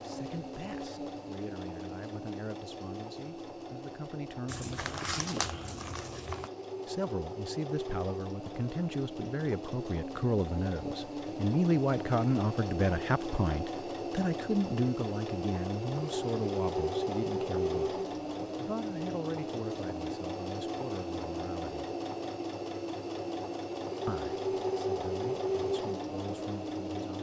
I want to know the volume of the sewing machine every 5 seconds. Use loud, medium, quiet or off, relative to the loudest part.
medium, medium, loud, loud, loud, loud.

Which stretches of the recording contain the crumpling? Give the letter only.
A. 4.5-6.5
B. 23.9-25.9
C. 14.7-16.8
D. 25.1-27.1
A.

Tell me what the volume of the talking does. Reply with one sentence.
The loudness of the talking goes up, then down.